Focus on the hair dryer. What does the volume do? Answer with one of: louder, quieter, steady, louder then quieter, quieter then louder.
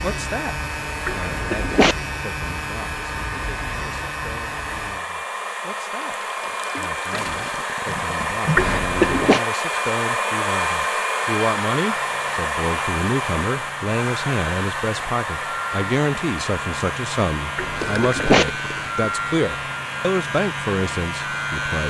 louder then quieter.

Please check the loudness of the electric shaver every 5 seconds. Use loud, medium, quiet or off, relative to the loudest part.
loud, off, medium, loud, loud.